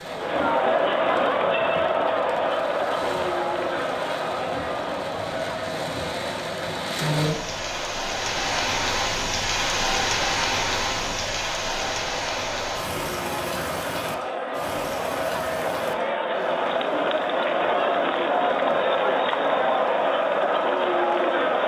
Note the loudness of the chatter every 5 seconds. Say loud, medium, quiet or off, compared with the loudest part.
loud, medium, medium, loud, loud.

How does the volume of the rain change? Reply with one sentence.
The loudness of the rain goes up, then down.